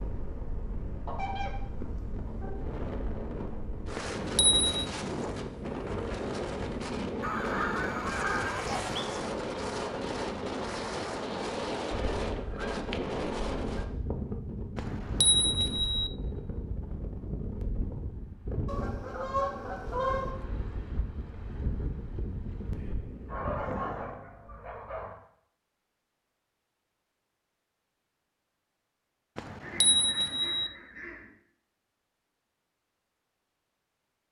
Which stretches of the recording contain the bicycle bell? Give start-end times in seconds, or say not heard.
4.0-4.8, 14.8-16.1, 29.4-30.7.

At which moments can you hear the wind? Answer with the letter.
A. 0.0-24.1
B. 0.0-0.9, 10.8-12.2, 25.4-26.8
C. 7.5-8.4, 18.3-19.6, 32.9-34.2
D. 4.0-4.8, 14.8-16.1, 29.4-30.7
A.